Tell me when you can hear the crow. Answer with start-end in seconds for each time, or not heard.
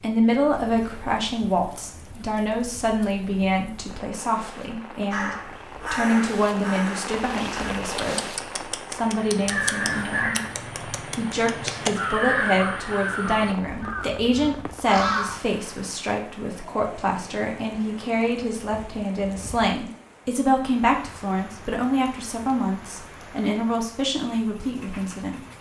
5.1-15.4.